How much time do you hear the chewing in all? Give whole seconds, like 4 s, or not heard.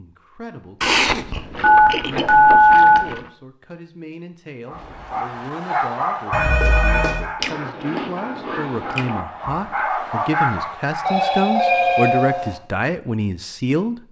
4 s.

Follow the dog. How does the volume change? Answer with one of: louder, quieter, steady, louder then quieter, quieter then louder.
quieter then louder.